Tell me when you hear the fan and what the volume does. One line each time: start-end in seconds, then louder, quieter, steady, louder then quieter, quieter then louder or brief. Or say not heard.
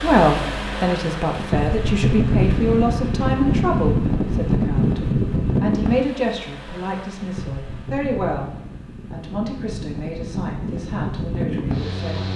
0.0-12.3 quieter then louder.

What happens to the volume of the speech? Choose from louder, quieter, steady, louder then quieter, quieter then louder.
quieter.